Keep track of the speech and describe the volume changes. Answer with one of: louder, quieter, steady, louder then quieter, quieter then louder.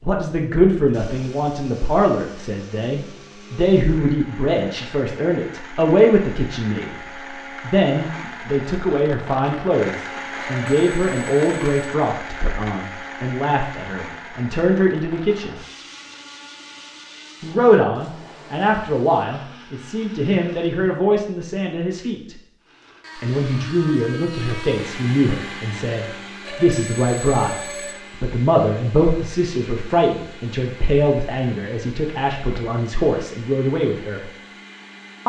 steady.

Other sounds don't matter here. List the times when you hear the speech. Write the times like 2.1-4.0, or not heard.
0.0-15.6, 17.4-22.4, 23.2-34.3.